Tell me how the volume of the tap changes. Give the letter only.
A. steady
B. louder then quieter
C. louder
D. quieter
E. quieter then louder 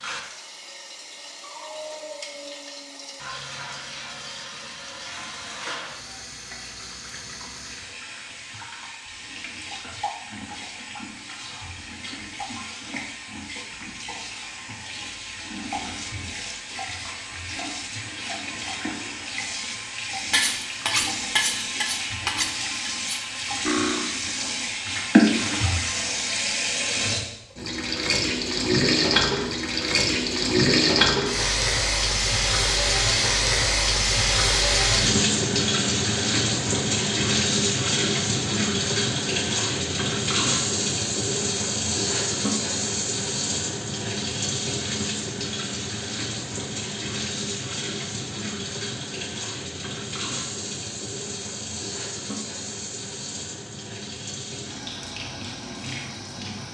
B.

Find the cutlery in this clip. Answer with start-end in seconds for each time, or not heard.
20.3-24.1.